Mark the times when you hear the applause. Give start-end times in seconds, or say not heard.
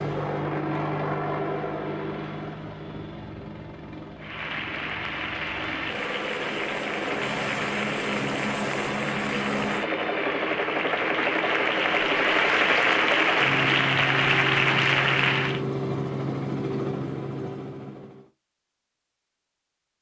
4.2-15.6.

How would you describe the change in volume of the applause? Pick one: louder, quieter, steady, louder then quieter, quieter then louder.
louder.